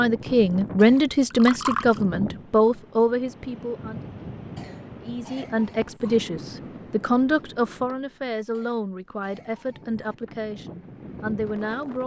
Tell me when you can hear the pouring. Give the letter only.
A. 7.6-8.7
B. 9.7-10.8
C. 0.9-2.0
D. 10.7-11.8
C.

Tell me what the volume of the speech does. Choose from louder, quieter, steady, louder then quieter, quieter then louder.
quieter.